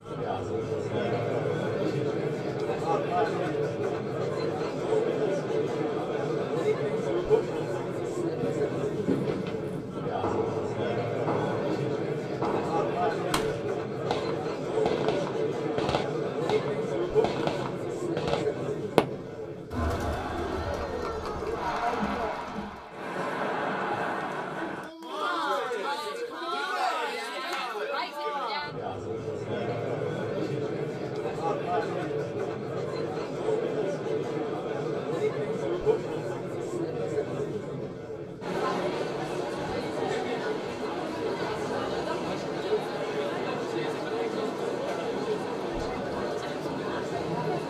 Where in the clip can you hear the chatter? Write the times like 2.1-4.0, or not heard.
0.0-47.6.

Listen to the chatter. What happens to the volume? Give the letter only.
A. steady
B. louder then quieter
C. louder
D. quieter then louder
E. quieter
A.